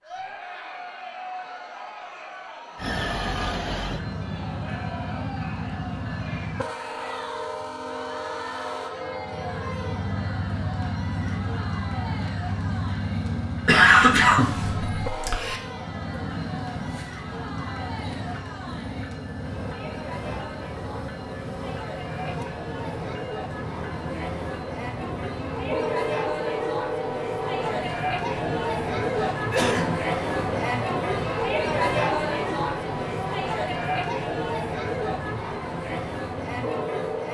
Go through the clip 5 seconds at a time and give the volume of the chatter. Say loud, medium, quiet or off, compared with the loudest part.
quiet, quiet, quiet, quiet, medium, loud, loud, medium.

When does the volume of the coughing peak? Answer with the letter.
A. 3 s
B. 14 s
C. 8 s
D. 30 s
B.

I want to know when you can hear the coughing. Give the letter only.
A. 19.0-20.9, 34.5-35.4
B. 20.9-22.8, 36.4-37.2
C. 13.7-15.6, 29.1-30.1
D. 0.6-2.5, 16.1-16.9
C.